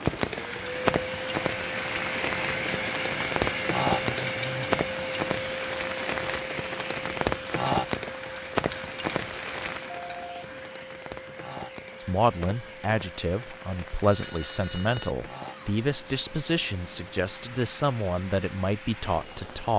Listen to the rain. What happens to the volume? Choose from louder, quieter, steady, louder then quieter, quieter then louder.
quieter.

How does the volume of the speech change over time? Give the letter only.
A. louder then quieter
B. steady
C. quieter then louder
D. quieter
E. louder
B.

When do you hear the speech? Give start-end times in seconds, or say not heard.
12.0-19.7.